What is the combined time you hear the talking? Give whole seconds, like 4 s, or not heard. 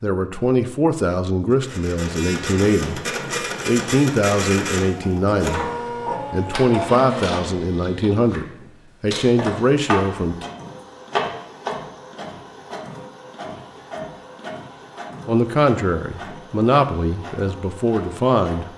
13 s.